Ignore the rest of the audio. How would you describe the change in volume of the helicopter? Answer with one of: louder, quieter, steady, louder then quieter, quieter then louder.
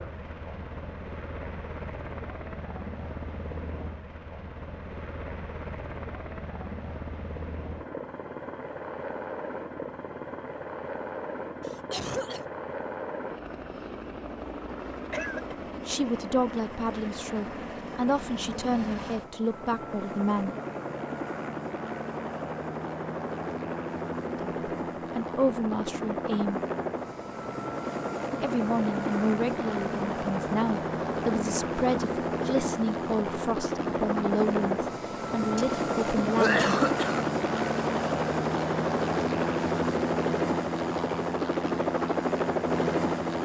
louder.